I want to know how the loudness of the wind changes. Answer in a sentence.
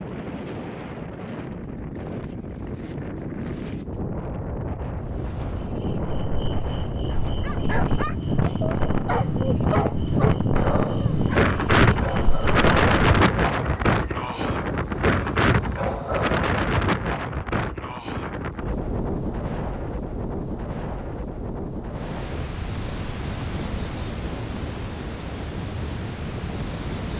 The volume of the wind goes up, then down.